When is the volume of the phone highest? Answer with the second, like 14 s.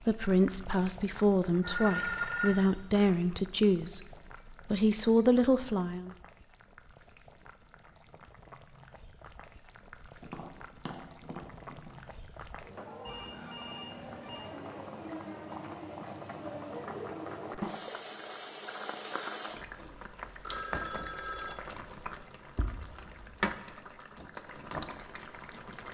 2 s.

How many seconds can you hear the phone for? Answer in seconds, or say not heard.
4 s.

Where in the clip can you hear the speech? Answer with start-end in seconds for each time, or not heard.
0.0-6.1.